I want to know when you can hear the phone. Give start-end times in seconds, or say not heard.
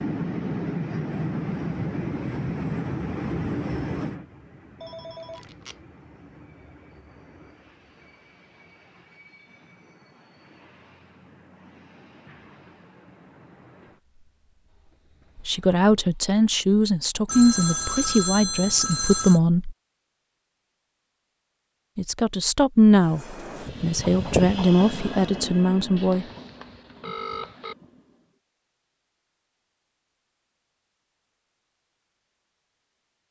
4.8-5.8, 17.2-19.4, 25.9-27.8.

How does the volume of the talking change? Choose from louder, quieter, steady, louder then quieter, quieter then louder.
steady.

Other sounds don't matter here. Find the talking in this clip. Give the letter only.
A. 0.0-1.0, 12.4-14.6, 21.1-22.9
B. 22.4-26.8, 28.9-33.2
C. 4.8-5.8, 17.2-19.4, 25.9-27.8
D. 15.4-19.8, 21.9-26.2
D.